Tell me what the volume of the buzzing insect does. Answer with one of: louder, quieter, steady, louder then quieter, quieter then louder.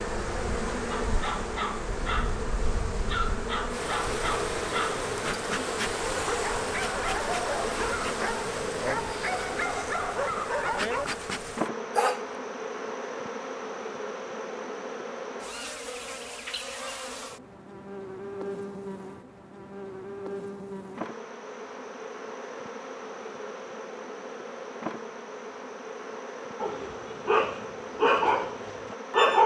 quieter.